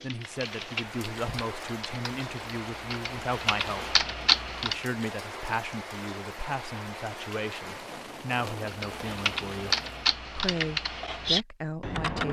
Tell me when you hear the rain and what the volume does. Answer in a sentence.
You can hear the rain from 0.0 to 10.2 s, at a steady volume.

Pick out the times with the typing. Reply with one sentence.
You can hear the typing from 0.0 to 4.8 s and from 8.7 to 12.2 s.